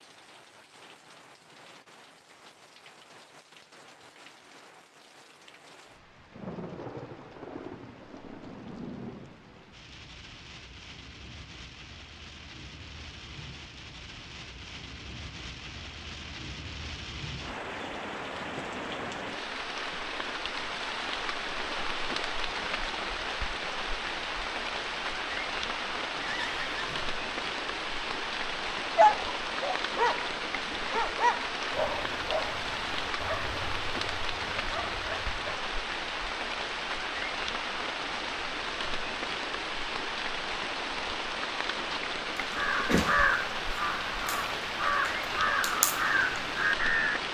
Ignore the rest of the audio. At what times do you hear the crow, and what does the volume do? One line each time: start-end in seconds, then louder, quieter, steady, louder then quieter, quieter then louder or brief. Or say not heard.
42.4-47.2 quieter then louder.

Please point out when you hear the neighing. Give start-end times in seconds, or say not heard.
26.1-27.1.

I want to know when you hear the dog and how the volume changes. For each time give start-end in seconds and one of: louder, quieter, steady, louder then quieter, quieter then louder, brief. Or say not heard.
28.9-35.6 quieter.